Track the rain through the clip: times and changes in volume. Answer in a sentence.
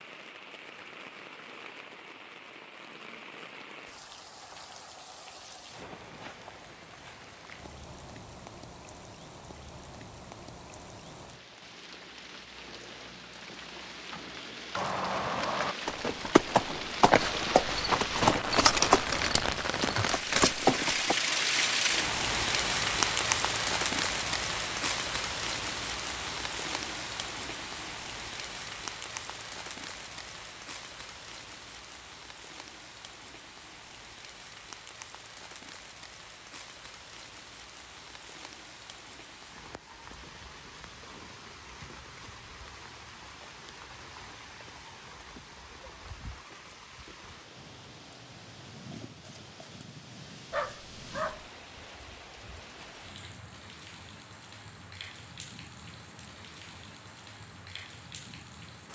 The rain can be heard from 0.0 to 58.9 s, getting louder then quieter.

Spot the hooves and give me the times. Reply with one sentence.
The hooves can be heard from 14.8 to 21.1 s.